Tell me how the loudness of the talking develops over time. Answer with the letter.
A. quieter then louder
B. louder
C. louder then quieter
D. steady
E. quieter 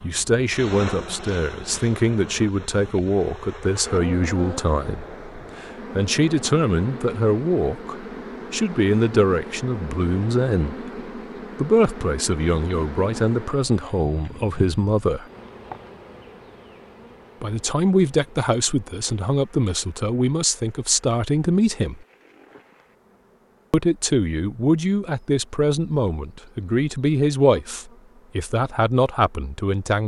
D.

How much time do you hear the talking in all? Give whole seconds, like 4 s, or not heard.
26 s.